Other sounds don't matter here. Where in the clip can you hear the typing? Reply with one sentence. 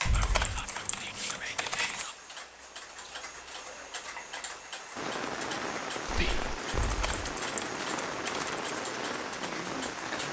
The typing can be heard from 0.1 to 2.0 s and from 6.7 to 8.8 s.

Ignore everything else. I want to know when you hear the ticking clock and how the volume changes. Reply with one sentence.
The ticking clock can be heard from 0.0 to 10.2 s, at a steady volume.